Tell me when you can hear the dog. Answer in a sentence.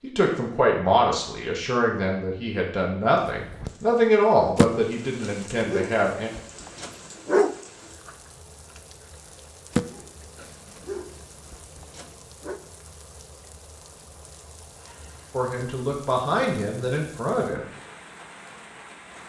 The dog can be heard from 4.5 to 7.5 s and from 9.7 to 12.6 s.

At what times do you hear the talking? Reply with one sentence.
You can hear the talking from 0.0 to 6.3 s and from 15.3 to 17.6 s.